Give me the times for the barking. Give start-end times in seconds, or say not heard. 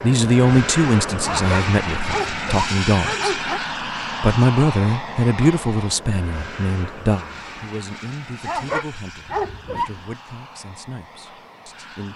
1.2-3.6, 8.4-9.9.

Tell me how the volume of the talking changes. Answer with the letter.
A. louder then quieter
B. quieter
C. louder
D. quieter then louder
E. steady
B.